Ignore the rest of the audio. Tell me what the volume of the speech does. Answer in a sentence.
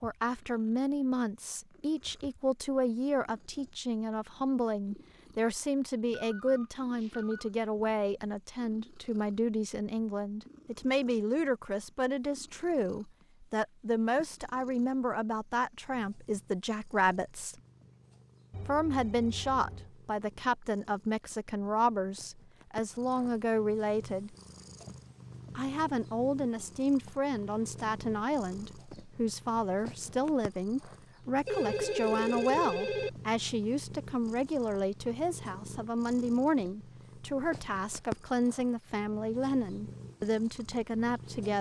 The volume of the speech stays about the same.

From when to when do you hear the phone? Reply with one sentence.
You can hear the phone from 6.2 to 7.5 s, from 18.5 to 19.9 s and from 31.4 to 33.1 s.